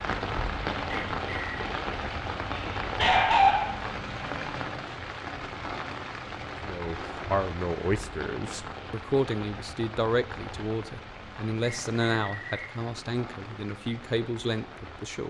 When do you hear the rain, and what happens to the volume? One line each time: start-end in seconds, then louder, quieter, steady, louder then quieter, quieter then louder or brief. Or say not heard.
0.0-15.2 quieter.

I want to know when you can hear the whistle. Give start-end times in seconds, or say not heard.
0.9-1.7, 11.6-12.8.